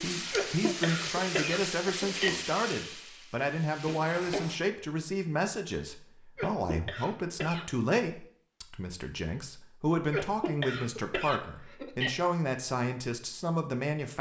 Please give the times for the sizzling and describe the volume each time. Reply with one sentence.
The sizzling can be heard from 0.0 to 4.6 s, getting quieter.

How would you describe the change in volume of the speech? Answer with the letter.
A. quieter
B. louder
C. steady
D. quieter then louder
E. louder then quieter
C.